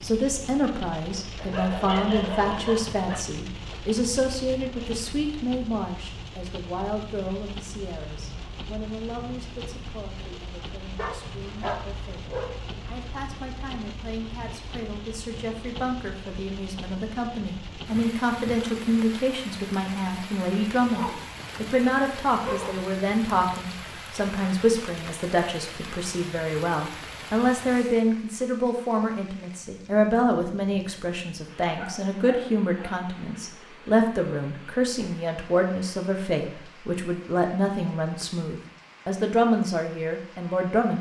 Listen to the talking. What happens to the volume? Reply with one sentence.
The loudness of the talking goes down, then up.